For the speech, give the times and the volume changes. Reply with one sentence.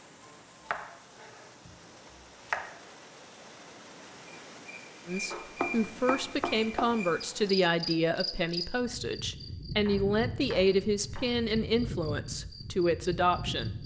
You can hear the speech from 5.0 to 13.8 s, at a steady volume.